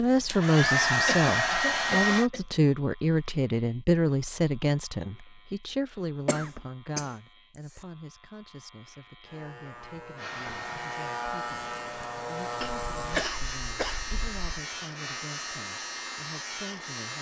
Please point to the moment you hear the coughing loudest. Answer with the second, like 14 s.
13 s.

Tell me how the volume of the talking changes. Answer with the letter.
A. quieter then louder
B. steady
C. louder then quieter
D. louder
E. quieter
E.